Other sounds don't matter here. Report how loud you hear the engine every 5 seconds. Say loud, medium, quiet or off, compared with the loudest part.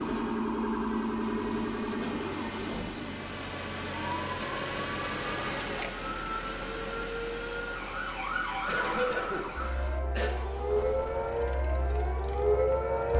loud, loud, medium.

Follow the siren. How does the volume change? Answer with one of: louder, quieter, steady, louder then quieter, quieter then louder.
quieter then louder.